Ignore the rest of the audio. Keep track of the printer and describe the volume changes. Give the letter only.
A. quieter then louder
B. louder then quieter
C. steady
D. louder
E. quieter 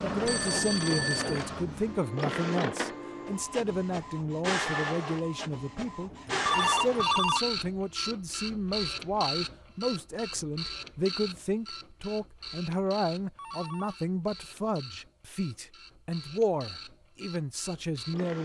E.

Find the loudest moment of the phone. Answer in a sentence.
The volume of the phone peaks at 7 seconds.